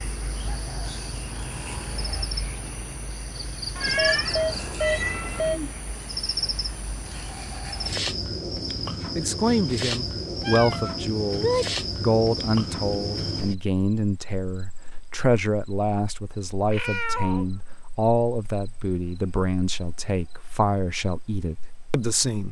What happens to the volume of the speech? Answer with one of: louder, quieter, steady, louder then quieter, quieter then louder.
steady.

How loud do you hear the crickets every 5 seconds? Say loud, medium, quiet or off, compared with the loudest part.
loud, loud, loud, quiet, quiet.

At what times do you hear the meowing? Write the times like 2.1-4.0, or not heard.
3.8-5.5, 10.4-11.8, 16.7-17.4.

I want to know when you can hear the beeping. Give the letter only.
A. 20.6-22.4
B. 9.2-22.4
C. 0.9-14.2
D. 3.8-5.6
D.